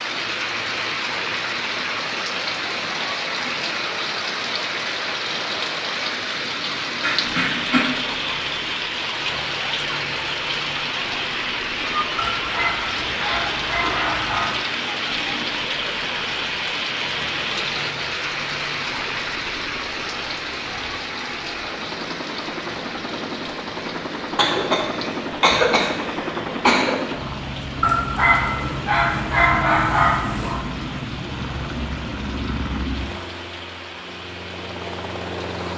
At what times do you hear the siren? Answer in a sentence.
The siren can't be heard in this clip.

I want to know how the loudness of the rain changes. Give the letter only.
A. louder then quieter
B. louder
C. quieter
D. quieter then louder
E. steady
C.